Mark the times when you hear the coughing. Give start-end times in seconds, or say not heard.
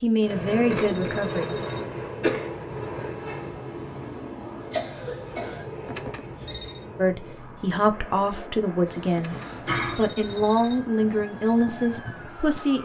0.7-2.5, 4.7-5.7, 9.3-10.1.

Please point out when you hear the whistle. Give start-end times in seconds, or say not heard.
not heard.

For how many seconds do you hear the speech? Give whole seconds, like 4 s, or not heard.
7 s.